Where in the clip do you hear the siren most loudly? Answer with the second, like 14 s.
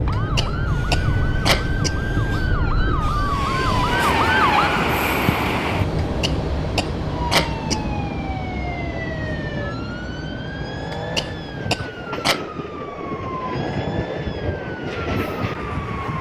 4 s.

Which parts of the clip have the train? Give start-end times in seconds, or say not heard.
0.0-16.1.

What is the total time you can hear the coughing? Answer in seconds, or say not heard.
5 s.